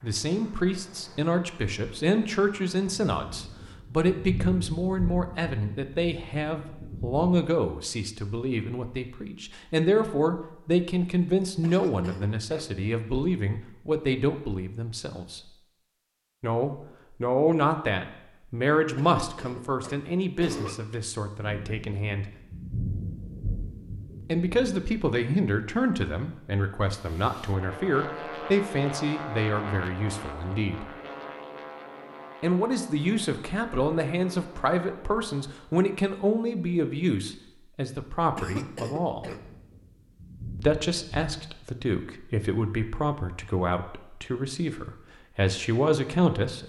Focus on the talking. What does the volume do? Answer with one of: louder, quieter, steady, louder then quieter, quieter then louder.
steady.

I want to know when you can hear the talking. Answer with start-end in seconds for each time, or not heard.
0.0-15.6, 16.4-22.3, 24.2-30.9, 32.4-39.2, 40.5-46.6.